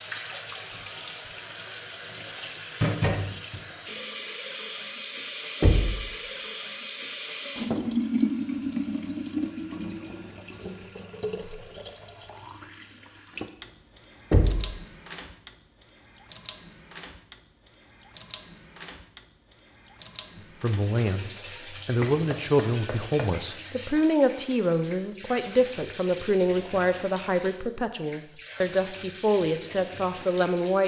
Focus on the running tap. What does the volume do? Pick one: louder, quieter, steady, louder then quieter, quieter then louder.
quieter.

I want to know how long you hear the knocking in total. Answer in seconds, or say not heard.
2 s.